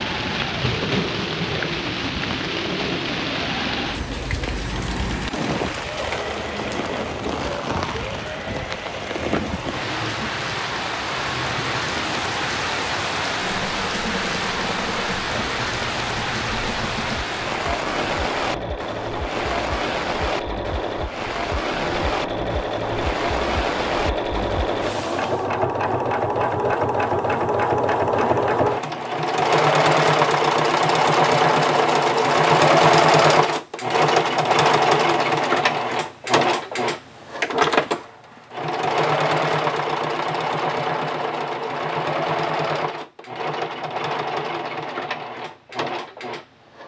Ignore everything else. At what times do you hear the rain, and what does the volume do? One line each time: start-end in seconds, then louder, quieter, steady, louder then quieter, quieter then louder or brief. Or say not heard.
0.0-25.5 steady.